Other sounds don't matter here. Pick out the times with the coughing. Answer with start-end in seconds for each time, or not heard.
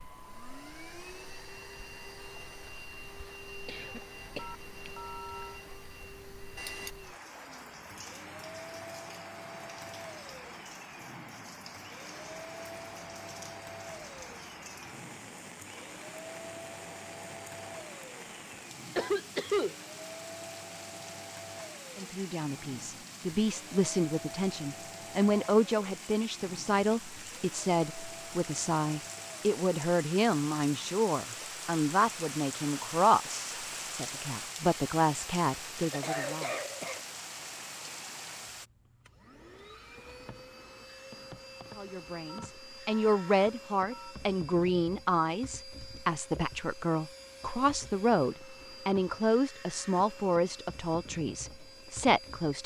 3.6-4.9, 18.9-19.8, 35.8-37.0.